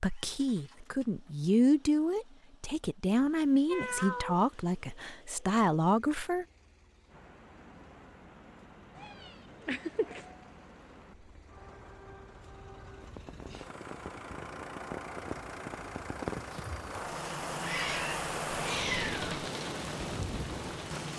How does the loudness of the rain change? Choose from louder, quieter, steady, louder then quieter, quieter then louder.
louder.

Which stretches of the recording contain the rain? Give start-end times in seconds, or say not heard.
7.0-21.1.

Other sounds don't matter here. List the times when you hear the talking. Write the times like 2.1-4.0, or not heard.
0.0-6.5.